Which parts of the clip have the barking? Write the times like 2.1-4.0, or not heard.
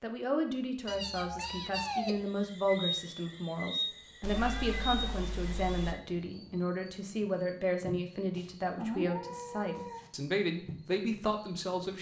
not heard.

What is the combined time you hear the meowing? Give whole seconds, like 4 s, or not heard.
5 s.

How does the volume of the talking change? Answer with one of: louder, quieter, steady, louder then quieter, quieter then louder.
steady.